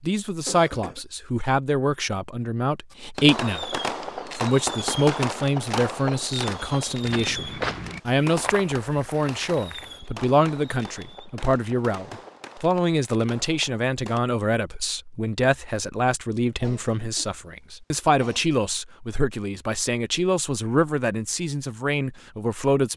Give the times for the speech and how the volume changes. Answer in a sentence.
You can hear the speech from 0.0 to 22.9 s, at a steady volume.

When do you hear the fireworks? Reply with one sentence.
You can hear the fireworks from 2.9 to 14.2 s.